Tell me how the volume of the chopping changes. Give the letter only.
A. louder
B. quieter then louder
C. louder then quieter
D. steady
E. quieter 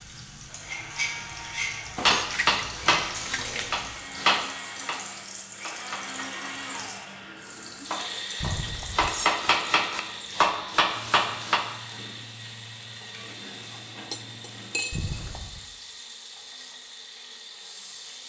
B.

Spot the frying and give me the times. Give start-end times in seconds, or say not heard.
0.0-18.2.